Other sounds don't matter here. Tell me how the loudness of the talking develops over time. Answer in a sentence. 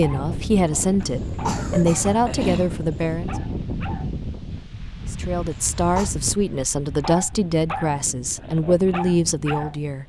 The loudness of the talking stays about the same.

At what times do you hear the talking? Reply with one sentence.
The talking can be heard from 0.0 to 3.4 s and from 5.1 to 10.0 s.